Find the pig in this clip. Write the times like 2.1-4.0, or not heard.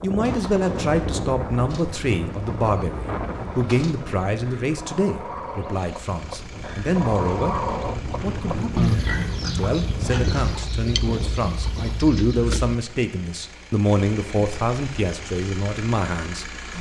8.8-10.6.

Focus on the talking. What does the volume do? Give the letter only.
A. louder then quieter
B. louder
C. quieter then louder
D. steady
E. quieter
D.